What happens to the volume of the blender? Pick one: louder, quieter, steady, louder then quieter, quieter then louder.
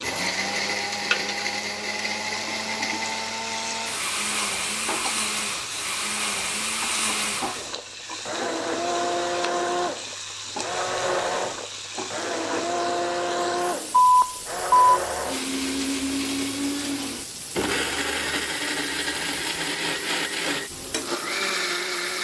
steady.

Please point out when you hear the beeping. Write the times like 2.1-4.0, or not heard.
13.9-14.9.